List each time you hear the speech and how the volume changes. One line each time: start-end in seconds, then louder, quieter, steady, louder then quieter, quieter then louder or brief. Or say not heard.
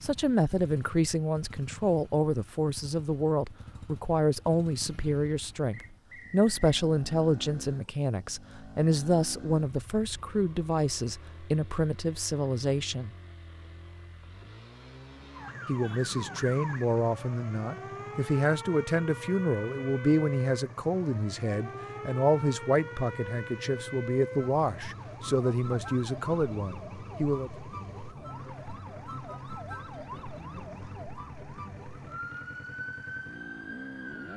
0.0-13.2 steady
15.7-27.5 steady.